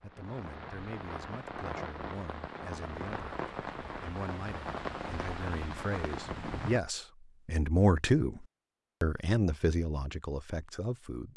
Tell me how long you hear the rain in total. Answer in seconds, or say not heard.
7 s.